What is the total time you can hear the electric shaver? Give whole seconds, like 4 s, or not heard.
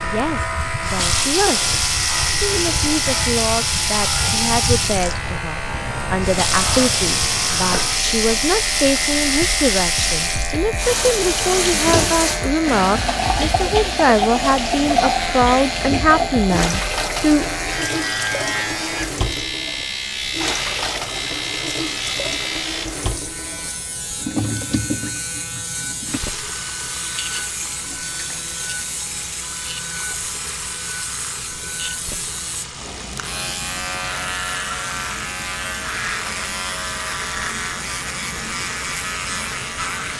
40 s.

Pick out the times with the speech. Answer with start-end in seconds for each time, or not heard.
0.0-17.4.